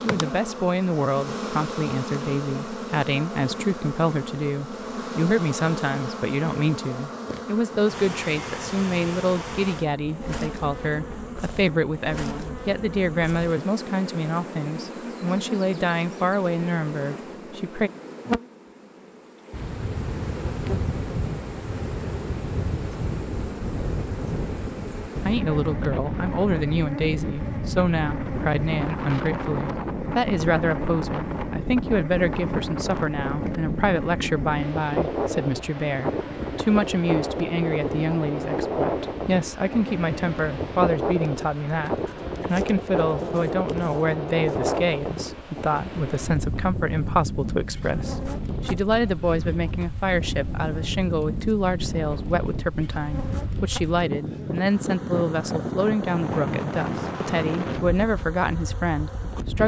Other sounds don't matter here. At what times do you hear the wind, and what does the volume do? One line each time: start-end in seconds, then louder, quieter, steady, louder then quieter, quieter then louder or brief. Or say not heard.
19.5-59.6 steady.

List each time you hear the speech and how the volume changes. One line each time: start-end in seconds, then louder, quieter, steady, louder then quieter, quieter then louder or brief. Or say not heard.
0.0-17.9 steady
25.2-59.6 steady.